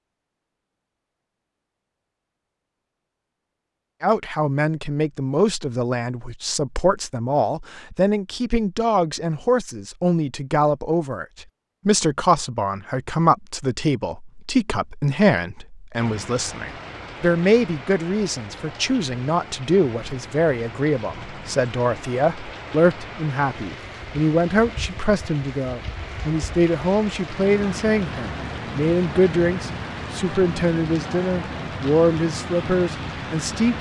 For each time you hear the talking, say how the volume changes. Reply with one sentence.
You can hear the talking from 4.0 to 33.7 s, at a steady volume.